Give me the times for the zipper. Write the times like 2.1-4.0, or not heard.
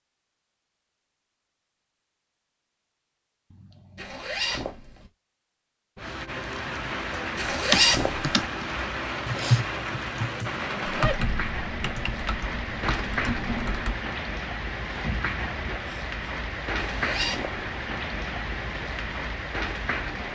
4.0-5.1, 7.3-8.3, 16.8-17.7.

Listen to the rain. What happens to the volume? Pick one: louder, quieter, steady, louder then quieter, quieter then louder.
steady.